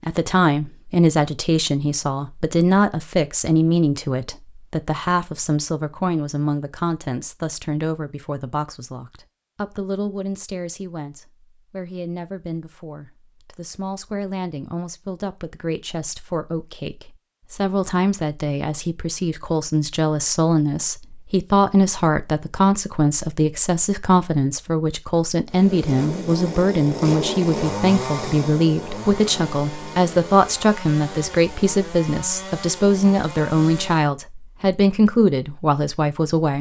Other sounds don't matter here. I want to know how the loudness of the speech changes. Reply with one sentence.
The volume of the speech goes down, then up.